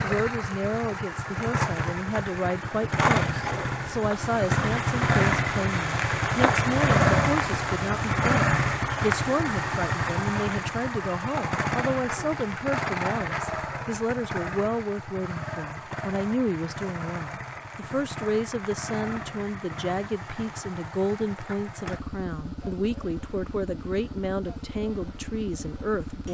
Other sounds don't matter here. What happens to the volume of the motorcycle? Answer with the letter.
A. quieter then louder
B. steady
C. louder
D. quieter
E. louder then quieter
D.